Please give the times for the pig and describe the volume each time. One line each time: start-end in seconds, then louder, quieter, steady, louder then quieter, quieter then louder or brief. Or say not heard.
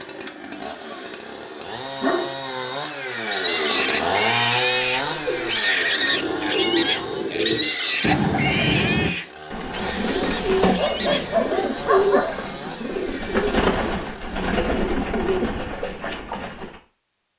3.2-11.2 quieter.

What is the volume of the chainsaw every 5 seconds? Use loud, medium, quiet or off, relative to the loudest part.
loud, medium, medium, off.